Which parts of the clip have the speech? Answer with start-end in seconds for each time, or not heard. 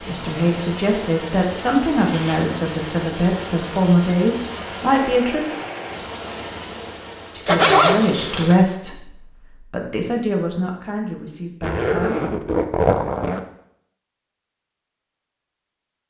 0.0-5.4, 7.3-12.2.